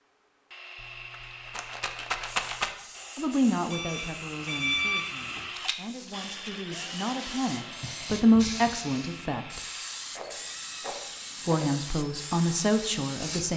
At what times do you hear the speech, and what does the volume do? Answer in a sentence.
The speech can be heard from 3.1 to 9.6 s, getting quieter then louder; and briefly from 11.4 to 13.5 s.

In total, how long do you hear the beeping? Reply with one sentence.
You can hear the beeping for 2 seconds altogether.